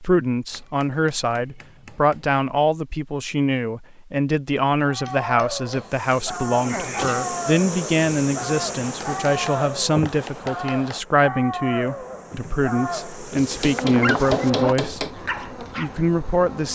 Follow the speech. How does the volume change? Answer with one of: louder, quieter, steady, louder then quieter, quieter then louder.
steady.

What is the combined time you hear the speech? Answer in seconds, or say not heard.
17 s.